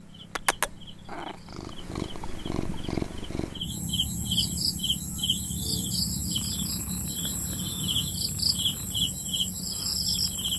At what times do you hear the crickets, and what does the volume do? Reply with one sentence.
You can hear the crickets from 0.0 to 10.5 s, getting louder.